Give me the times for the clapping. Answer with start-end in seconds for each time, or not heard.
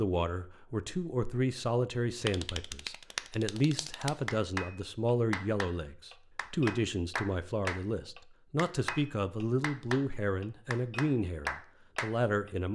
2.2-12.5.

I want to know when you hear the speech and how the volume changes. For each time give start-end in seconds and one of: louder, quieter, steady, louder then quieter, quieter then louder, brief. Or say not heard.
0.0-12.7 steady.